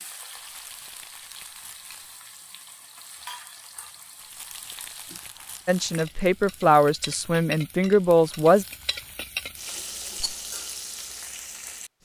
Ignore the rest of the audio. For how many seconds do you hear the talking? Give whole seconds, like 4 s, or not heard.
3 s.